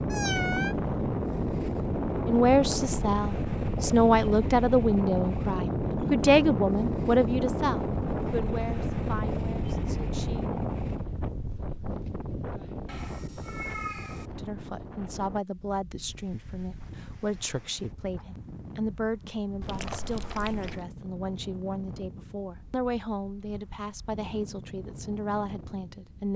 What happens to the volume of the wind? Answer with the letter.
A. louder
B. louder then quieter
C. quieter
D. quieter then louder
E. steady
C.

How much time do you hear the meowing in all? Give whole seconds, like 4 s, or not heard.
3 s.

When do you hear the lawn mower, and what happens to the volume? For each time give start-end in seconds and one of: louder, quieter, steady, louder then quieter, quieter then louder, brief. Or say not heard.
not heard.